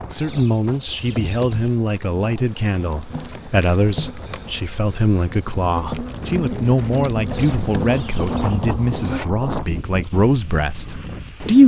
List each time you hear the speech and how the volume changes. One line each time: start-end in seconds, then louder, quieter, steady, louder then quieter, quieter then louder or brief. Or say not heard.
0.1-11.6 steady.